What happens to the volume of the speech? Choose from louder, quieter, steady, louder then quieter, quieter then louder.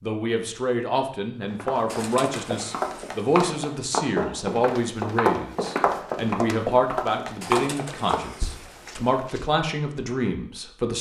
steady.